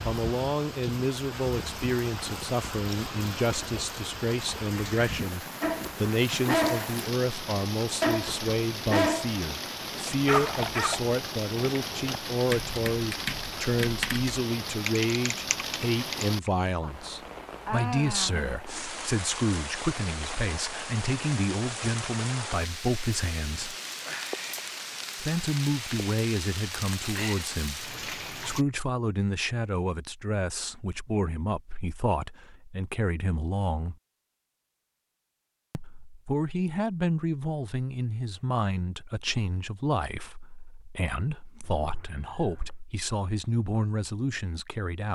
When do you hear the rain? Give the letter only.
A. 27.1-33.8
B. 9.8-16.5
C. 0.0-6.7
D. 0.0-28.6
D.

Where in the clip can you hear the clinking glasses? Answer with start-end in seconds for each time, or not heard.
not heard.